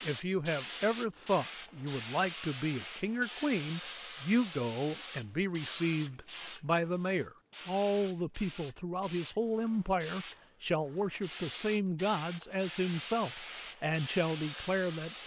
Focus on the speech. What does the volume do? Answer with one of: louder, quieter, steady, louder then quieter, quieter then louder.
steady.